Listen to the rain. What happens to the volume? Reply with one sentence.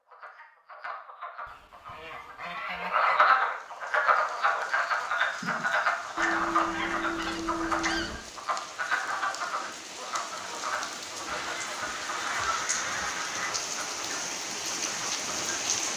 The volume of the rain goes up.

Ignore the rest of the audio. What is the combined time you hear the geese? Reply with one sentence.
You can hear the geese for 6 seconds altogether.